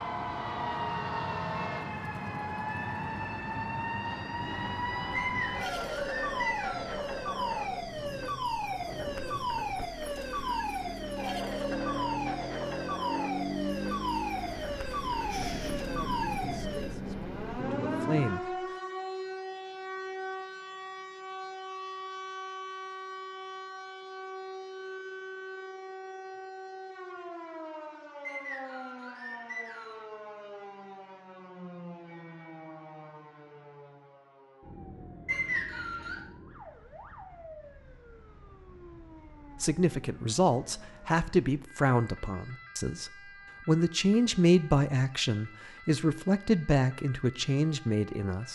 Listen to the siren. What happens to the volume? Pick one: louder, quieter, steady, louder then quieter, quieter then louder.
quieter.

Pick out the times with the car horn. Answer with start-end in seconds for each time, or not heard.
not heard.